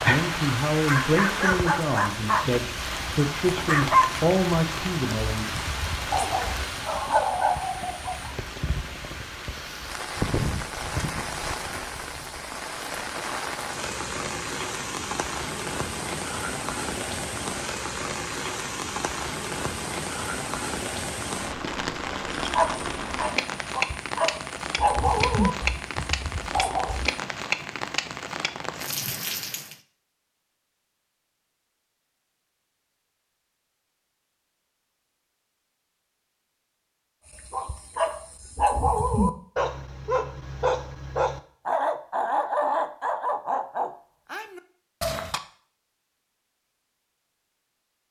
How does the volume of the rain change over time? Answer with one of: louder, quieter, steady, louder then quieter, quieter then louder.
steady.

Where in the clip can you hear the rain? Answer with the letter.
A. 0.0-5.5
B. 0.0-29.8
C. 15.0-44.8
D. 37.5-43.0
B.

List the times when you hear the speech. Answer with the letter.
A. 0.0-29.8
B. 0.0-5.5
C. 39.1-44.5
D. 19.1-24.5
B.